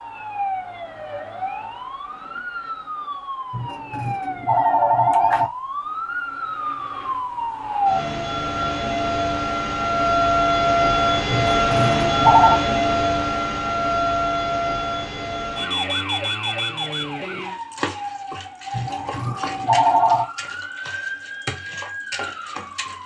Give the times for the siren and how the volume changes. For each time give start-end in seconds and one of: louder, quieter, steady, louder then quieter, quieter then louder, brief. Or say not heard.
0.0-23.0 louder then quieter.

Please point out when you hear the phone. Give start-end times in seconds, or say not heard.
3.5-5.5, 11.3-12.6, 18.8-20.3.